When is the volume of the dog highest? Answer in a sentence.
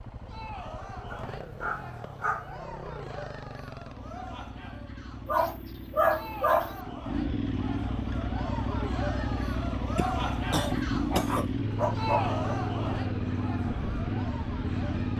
The loudest moment of the dog is at 6 seconds.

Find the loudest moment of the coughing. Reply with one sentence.
The volume of the coughing peaks at 11 seconds.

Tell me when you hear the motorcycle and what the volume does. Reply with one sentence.
The motorcycle can be heard from 0.0 to 15.1 s, getting louder.